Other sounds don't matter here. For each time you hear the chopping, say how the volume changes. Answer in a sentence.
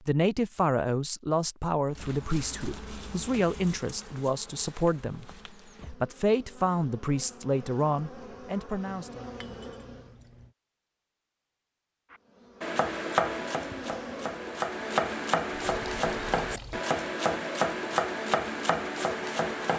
You can hear the chopping from 12.1 to 19.7 s, at a steady volume.